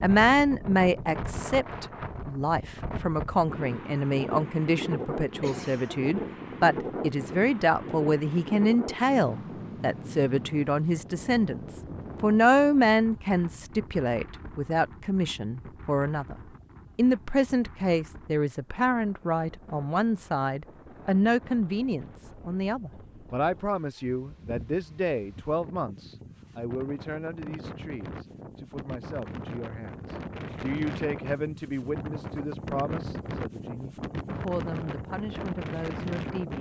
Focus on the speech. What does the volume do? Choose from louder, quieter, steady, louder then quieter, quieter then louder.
quieter.